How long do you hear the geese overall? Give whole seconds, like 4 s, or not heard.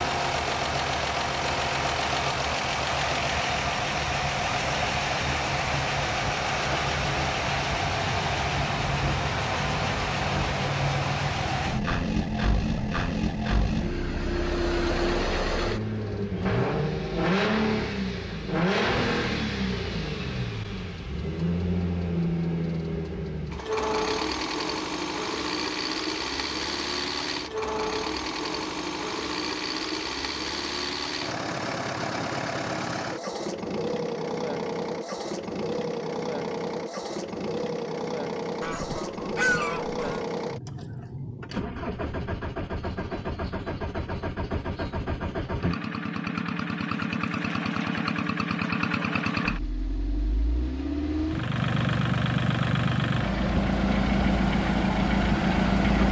2 s.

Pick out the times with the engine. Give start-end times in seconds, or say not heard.
0.0-56.0.